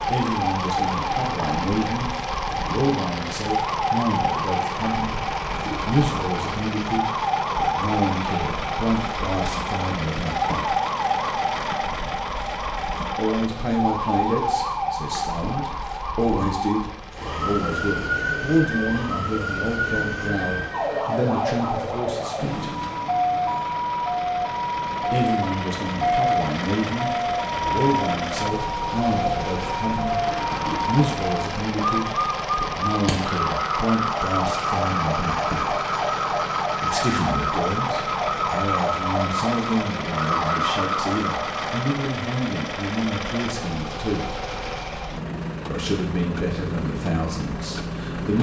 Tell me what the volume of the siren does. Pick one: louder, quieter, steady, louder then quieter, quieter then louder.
steady.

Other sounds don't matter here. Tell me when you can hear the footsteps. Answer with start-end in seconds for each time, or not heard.
not heard.